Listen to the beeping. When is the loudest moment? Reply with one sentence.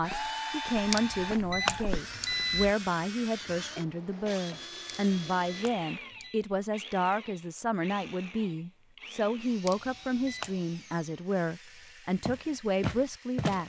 The loudest moment of the beeping is at 2 seconds.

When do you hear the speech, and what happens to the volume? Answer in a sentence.
The speech can be heard from 0.0 to 13.6 s, at a steady volume.